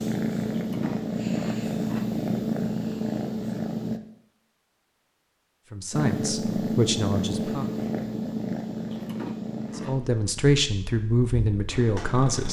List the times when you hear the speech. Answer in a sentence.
You can hear the speech from 5.7 to 7.7 s and from 9.8 to 12.4 s.